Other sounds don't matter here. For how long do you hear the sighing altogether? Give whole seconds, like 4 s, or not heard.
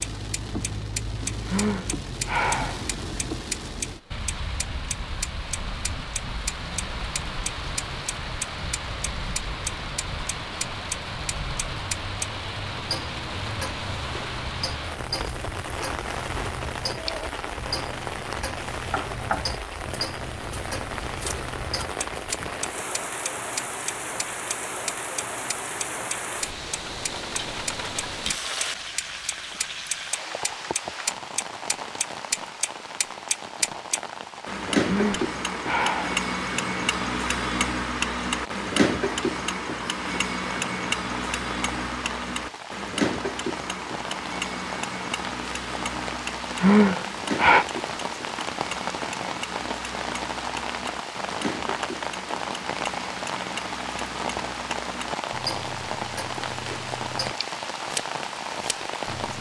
4 s.